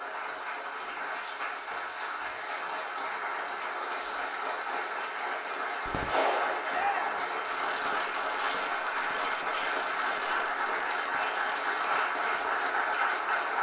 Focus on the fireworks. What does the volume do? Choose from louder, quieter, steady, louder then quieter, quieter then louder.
quieter.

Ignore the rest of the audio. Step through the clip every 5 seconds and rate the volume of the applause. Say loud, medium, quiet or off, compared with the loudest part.
medium, loud, loud.